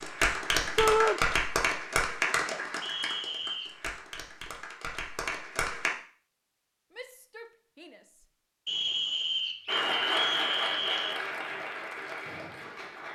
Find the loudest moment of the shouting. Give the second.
1 s.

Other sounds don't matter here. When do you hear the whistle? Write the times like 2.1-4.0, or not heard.
2.8-3.8, 8.7-11.2.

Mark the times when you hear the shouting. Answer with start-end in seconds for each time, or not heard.
0.8-1.2, 6.9-8.2.